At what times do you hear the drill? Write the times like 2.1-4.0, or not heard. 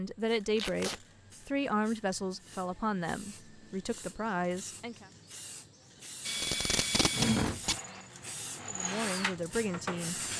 6.2-10.3.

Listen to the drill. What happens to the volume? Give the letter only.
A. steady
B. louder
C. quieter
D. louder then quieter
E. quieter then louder
E.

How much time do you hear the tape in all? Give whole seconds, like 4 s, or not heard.
2 s.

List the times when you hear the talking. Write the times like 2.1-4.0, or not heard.
0.0-5.1, 8.7-10.2.